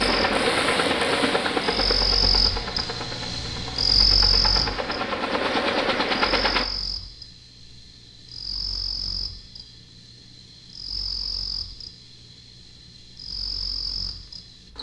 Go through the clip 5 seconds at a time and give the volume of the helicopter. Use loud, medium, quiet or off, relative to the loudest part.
loud, loud, off.